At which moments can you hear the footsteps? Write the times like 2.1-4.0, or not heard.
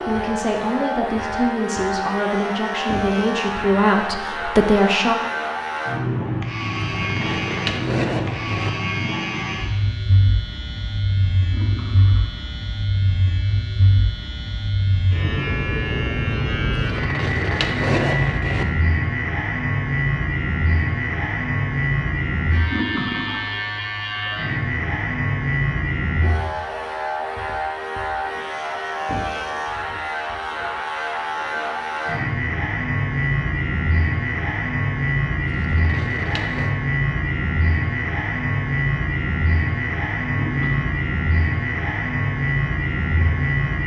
not heard.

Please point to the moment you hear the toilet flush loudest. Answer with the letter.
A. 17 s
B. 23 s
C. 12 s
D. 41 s
B.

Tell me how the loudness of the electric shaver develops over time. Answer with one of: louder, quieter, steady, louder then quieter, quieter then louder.
steady.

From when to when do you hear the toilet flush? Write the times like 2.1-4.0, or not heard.
11.4-12.5, 22.6-23.6, 40.3-41.0.